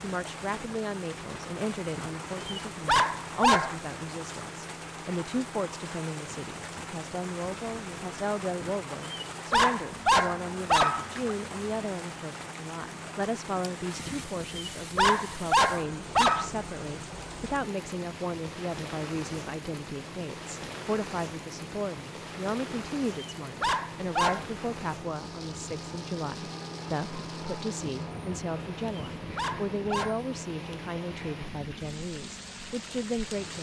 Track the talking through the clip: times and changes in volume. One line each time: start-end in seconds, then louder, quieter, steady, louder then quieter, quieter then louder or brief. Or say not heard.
0.0-33.5 steady.